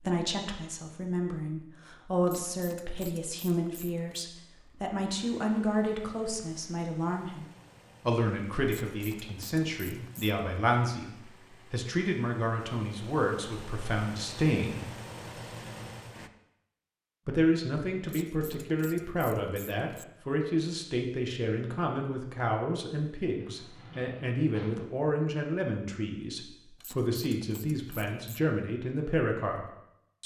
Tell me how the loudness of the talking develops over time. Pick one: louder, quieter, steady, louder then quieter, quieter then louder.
steady.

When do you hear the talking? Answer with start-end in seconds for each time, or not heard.
0.0-7.5, 8.1-14.9, 17.2-30.2.